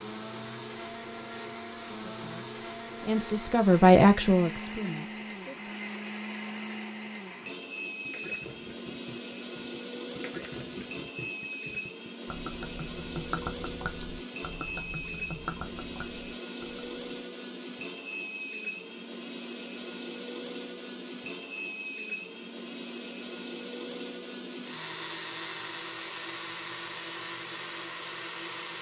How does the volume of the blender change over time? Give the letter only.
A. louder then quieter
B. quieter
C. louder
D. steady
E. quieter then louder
D.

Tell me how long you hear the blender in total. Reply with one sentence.
You can hear the blender for 29 seconds altogether.